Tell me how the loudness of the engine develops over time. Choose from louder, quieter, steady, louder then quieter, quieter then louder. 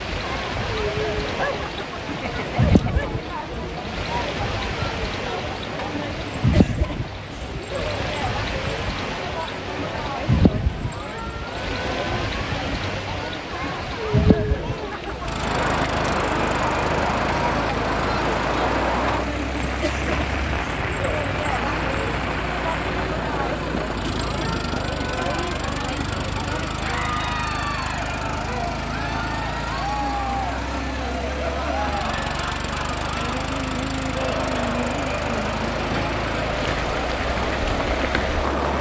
steady.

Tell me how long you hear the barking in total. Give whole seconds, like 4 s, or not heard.
2 s.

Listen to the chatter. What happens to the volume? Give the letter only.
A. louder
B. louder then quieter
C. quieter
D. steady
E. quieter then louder
D.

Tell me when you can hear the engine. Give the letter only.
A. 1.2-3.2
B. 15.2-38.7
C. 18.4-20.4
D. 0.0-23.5
B.